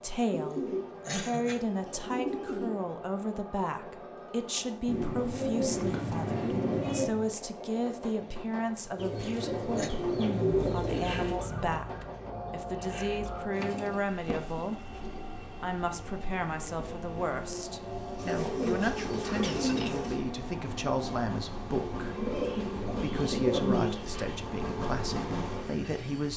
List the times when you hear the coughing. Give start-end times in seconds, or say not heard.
0.5-1.6, 9.2-9.9, 19.4-20.1.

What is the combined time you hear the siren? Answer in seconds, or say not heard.
3 s.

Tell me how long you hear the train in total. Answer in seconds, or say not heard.
26 s.